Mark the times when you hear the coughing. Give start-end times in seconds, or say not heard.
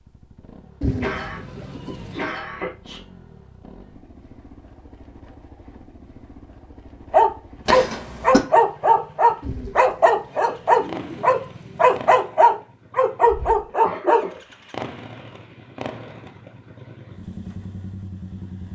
1.0-3.0, 7.7-8.4, 13.7-14.4.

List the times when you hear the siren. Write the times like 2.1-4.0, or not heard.
not heard.